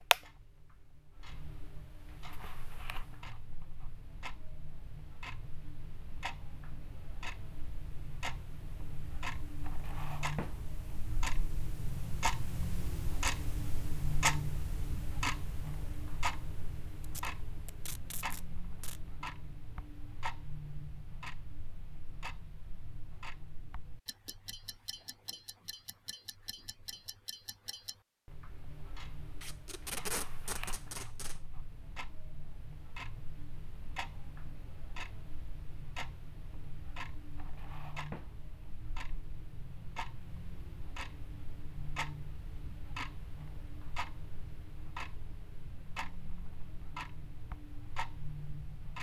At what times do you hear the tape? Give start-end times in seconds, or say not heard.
17.0-19.0, 29.4-31.4.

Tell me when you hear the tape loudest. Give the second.
30 s.